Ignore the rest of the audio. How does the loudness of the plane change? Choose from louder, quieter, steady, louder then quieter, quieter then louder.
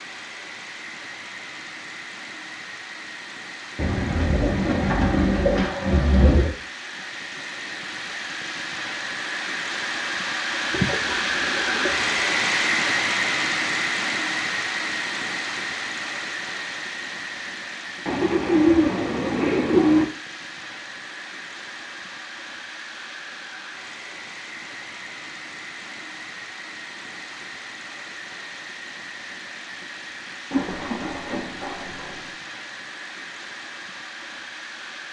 louder then quieter.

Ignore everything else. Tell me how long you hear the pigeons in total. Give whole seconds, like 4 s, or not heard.
8 s.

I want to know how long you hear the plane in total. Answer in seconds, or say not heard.
35 s.